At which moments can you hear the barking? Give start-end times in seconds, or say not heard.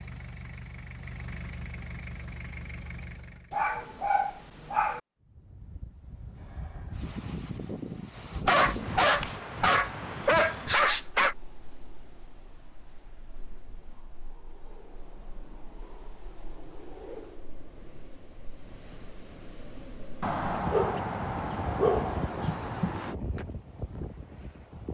3.5-5.0, 8.3-11.3, 20.2-23.1.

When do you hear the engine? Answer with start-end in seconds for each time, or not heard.
0.0-3.5.